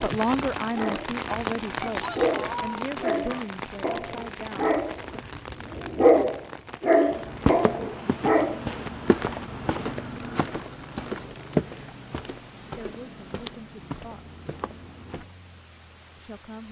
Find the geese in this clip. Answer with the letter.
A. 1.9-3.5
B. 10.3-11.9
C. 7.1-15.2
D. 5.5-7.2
A.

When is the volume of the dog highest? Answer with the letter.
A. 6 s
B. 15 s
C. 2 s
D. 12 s
A.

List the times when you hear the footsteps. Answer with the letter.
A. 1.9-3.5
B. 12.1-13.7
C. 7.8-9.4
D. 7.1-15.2
D.